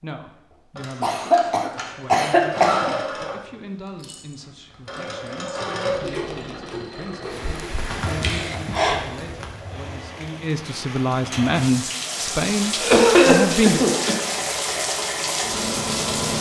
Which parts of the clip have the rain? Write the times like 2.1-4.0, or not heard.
7.2-16.3.